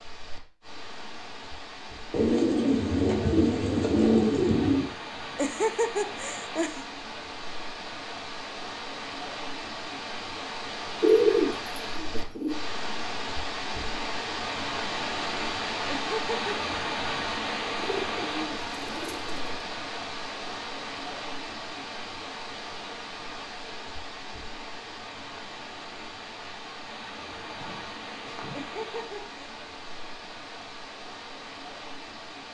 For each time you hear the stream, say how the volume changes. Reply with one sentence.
You can hear the stream from 0.0 to 32.4 s, getting louder then quieter.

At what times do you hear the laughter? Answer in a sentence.
The laughter can be heard from 5.3 to 6.8 s, from 15.9 to 16.6 s and from 28.6 to 29.4 s.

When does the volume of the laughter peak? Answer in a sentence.
The volume of the laughter peaks at 6 seconds.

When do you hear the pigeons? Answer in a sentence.
You can hear the pigeons from 2.1 to 4.9 s, from 11.0 to 12.6 s, from 17.8 to 19.6 s and from 27.1 to 28.6 s.